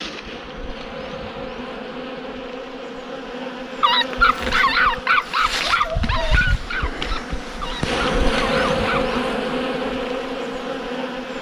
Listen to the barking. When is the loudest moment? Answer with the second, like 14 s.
5 s.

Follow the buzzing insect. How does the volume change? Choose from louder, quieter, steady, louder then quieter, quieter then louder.
louder.